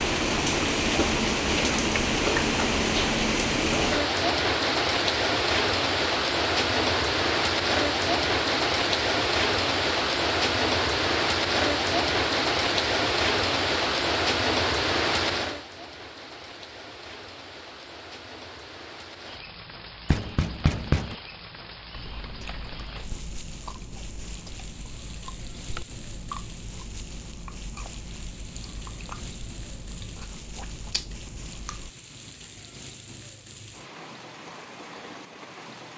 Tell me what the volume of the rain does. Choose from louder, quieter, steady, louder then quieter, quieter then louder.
quieter.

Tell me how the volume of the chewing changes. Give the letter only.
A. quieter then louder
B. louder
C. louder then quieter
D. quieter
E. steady
E.